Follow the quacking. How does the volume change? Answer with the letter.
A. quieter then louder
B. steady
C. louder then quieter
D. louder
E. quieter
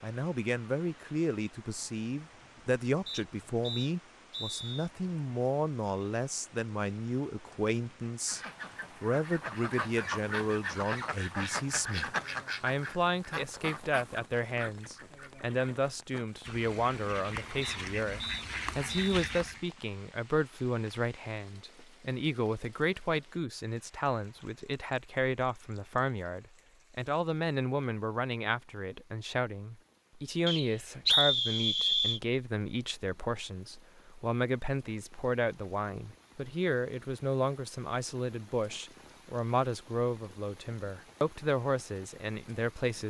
A.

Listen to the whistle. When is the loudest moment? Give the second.
31 s.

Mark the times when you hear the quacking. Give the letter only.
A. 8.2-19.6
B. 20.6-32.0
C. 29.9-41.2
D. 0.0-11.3
A.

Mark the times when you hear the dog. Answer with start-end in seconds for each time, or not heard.
not heard.